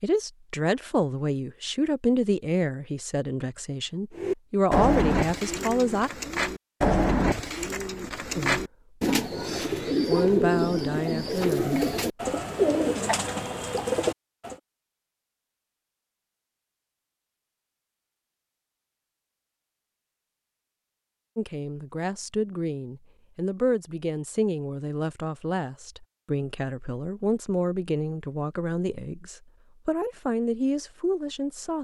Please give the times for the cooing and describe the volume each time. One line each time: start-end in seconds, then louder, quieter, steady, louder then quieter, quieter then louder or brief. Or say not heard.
4.2-14.6 steady.